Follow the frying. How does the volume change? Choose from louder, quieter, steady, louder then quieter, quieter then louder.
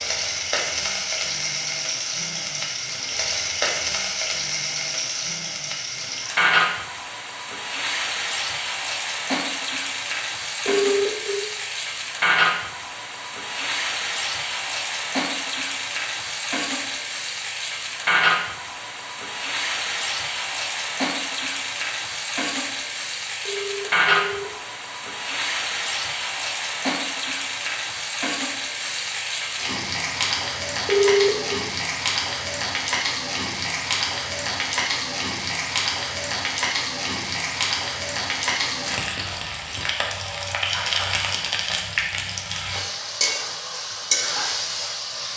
steady.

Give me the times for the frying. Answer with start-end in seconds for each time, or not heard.
0.0-45.3.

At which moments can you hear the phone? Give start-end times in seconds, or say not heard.
10.7-11.4, 23.4-24.5, 30.9-31.6.